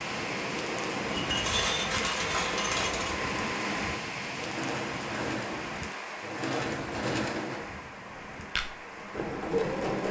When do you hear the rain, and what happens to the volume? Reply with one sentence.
You can hear the rain from 0.0 to 10.0 s, getting quieter.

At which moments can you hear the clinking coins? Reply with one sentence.
You can hear the clinking coins from 1.1 to 3.1 s.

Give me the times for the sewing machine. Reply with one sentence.
You can hear the sewing machine from 0.1 to 10.0 s.